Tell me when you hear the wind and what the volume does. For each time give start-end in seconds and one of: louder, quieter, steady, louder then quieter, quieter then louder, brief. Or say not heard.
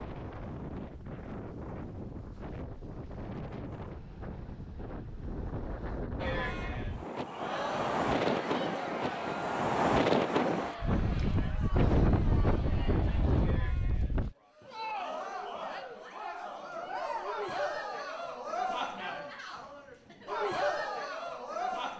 0.0-14.3 louder.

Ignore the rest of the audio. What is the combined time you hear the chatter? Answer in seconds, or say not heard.
16 s.